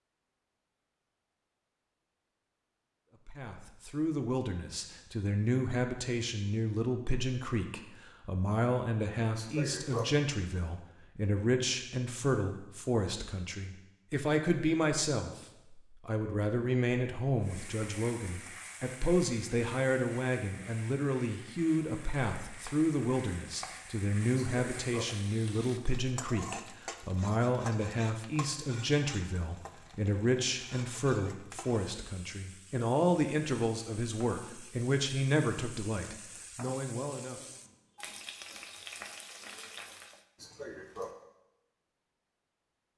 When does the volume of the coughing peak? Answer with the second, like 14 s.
10 s.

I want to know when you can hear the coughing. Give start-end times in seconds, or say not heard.
9.3-10.1, 24.4-25.1, 40.4-41.1.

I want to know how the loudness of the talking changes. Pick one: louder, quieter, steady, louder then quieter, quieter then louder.
steady.